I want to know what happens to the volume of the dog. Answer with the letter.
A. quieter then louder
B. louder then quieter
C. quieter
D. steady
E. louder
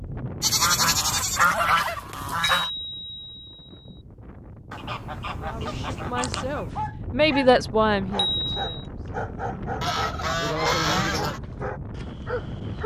D.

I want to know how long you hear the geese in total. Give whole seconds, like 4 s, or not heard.
6 s.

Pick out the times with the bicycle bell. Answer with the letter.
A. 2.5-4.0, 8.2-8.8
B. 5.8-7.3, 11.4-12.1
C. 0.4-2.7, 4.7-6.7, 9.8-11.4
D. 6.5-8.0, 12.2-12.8
A.